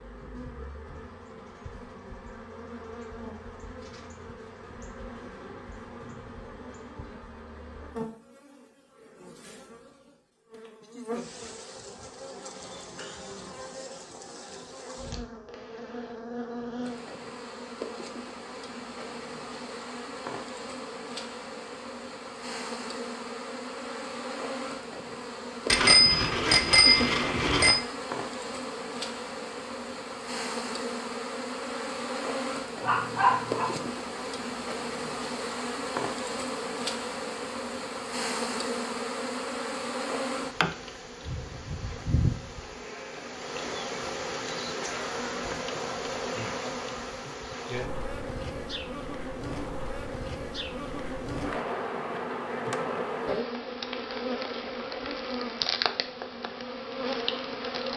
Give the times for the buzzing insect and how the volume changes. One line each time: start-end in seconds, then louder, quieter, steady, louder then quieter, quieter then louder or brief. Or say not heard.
0.0-57.9 louder.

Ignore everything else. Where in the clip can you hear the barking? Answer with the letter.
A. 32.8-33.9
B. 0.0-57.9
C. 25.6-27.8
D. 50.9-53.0
A.